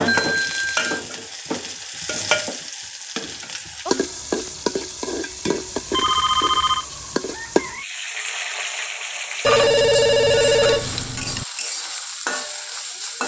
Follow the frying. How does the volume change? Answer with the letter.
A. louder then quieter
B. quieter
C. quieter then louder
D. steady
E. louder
D.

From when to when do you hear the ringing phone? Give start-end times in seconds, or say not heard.
0.1-0.8, 5.9-6.8, 9.4-11.4.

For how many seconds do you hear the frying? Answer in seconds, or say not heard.
13 s.